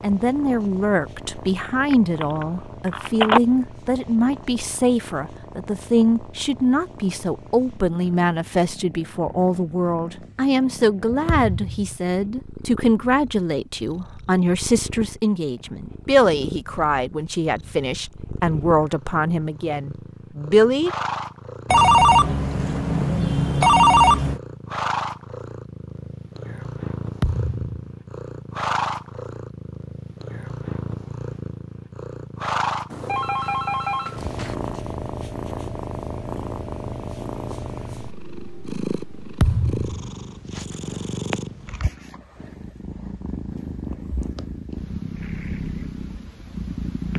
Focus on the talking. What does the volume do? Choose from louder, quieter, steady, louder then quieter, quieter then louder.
steady.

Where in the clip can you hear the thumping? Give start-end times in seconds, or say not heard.
11.2-11.9, 27.2-27.7, 39.4-40.1.